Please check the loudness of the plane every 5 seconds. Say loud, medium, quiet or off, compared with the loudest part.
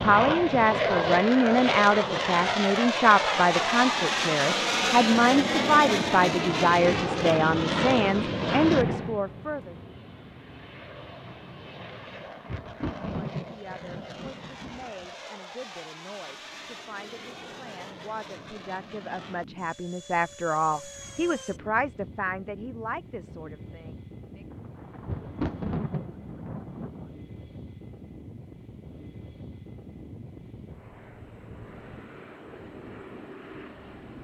loud, loud, quiet, quiet, quiet, quiet, quiet.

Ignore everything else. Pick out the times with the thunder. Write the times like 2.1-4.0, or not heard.
12.0-15.1, 24.5-27.1.